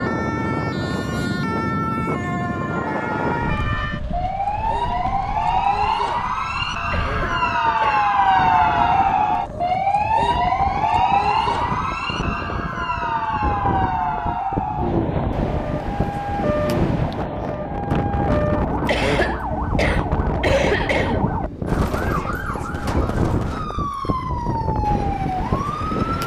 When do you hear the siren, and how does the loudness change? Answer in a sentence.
You can hear the siren from 0.0 to 26.2 s, getting louder then quieter.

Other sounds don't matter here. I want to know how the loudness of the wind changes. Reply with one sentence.
The volume of the wind goes down, then up.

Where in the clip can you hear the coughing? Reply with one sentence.
You can hear the coughing from 6.9 to 8.1 s and from 18.9 to 21.4 s.